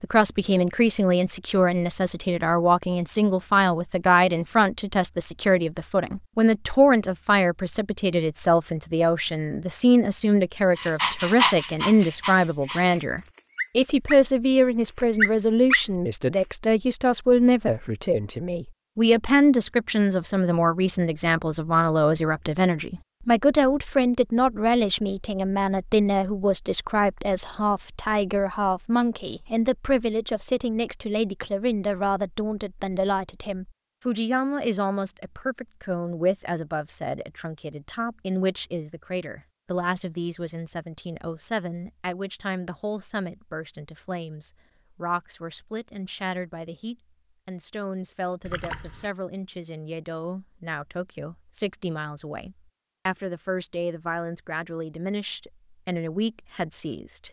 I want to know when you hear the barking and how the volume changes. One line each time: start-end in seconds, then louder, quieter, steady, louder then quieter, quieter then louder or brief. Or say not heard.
10.8-16.4 quieter then louder.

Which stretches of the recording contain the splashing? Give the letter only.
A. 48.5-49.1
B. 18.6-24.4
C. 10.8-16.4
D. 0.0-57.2
A.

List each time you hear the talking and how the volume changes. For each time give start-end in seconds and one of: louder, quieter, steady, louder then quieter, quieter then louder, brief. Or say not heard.
0.0-57.2 quieter.